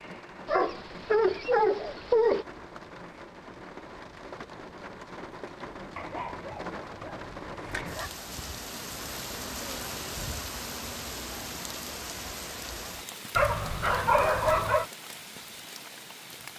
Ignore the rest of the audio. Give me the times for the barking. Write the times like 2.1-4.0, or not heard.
0.5-2.5, 6.0-8.1, 13.3-14.8.